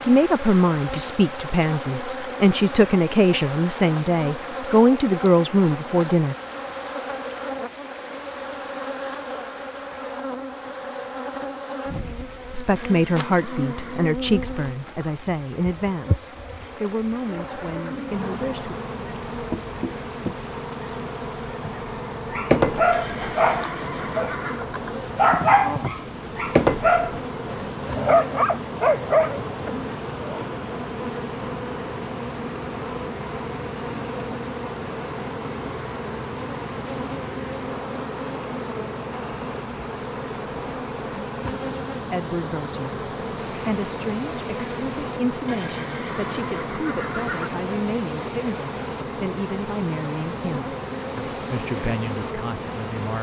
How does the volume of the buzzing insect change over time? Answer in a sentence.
The volume of the buzzing insect stays about the same.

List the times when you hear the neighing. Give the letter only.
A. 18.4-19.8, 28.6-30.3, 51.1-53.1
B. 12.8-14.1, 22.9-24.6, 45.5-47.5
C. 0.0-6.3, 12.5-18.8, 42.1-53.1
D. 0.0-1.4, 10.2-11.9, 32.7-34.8
B.